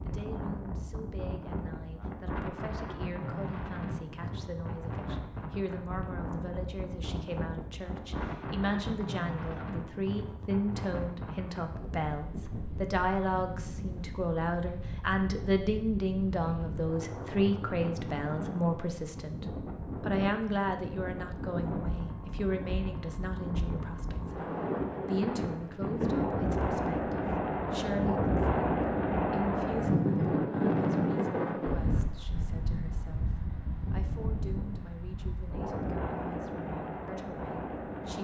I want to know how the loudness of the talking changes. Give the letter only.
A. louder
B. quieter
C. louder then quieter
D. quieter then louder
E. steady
C.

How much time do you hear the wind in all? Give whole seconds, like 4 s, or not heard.
38 s.